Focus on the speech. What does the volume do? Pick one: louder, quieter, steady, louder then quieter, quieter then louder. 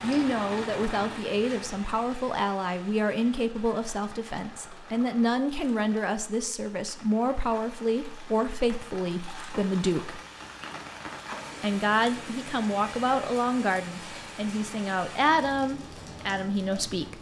steady.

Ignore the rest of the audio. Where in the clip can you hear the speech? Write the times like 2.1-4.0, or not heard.
0.0-10.2, 11.6-17.1.